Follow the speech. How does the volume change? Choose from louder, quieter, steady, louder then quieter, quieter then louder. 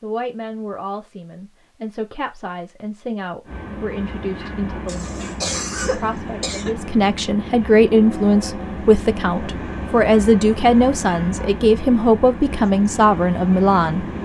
louder.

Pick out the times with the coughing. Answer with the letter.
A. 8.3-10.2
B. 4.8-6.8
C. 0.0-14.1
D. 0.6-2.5
B.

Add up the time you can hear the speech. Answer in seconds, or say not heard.
14 s.